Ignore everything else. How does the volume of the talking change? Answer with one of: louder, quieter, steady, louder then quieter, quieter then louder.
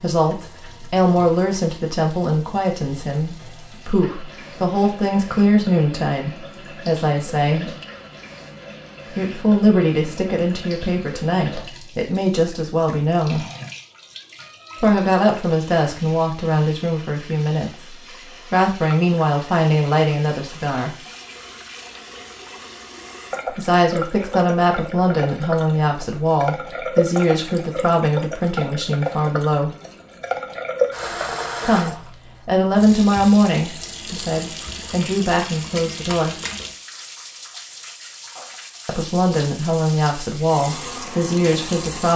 steady.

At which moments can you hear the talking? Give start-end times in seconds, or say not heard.
0.0-7.8, 9.1-13.4, 14.8-20.9, 23.5-29.7, 31.6-36.4, 38.9-42.1.